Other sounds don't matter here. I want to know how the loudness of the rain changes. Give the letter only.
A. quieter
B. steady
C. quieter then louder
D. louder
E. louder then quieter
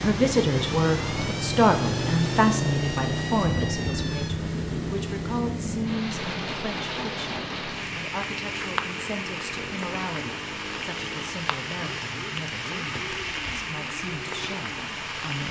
B.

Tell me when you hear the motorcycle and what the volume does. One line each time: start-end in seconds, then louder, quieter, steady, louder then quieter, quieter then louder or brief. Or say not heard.
0.0-15.4 quieter.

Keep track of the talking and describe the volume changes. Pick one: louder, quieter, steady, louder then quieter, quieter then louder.
quieter.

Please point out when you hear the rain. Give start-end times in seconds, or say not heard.
0.0-15.4.